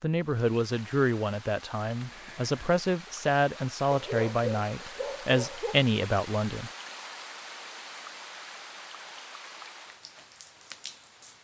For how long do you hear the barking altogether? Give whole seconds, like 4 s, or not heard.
2 s.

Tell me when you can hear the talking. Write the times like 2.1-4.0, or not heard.
0.0-6.7.